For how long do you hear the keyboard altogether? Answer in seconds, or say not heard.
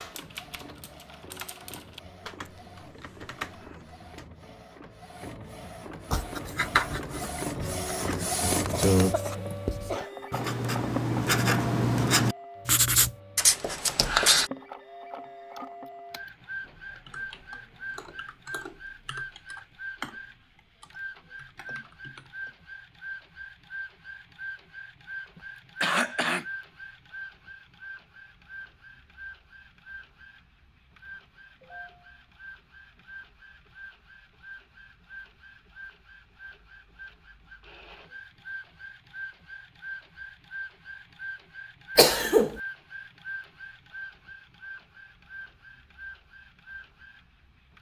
11 s.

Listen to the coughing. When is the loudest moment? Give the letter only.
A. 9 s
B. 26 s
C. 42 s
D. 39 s
C.